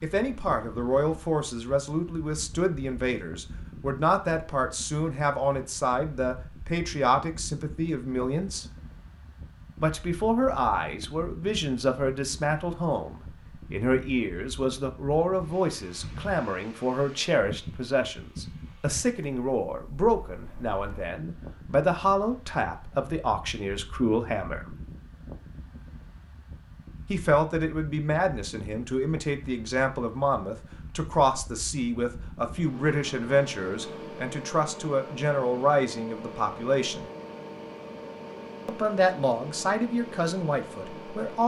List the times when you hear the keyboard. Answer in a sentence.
The keyboard can't be heard in this clip.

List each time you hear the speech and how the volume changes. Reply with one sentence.
The speech can be heard from 0.0 to 8.7 s, at a steady volume; from 9.8 to 24.8 s, at a steady volume; from 27.1 to 37.0 s, at a steady volume; and briefly from 38.6 to 41.4 s.